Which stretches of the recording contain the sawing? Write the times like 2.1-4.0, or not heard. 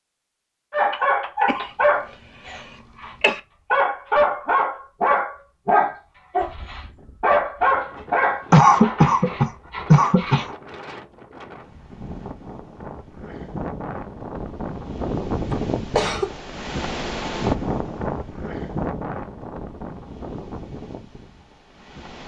not heard.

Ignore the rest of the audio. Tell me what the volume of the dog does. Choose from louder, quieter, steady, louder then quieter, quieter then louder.
quieter.